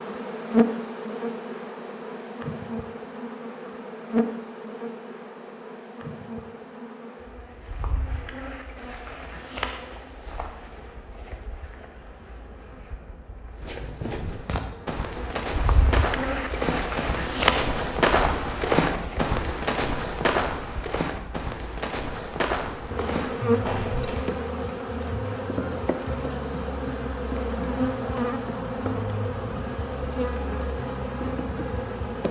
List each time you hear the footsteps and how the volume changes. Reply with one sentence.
The footsteps can be heard from 13.6 to 24.3 s, getting louder then quieter.